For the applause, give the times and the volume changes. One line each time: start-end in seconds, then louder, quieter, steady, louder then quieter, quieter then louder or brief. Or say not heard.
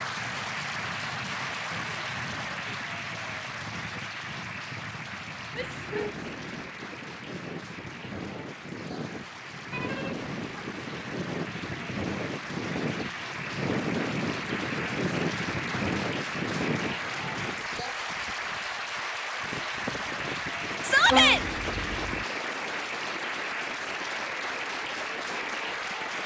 0.0-26.2 quieter then louder.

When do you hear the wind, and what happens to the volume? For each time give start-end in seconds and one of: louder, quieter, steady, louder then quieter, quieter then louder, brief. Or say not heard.
0.0-26.2 louder then quieter.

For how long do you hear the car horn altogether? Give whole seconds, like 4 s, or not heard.
3 s.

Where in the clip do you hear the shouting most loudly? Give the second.
21 s.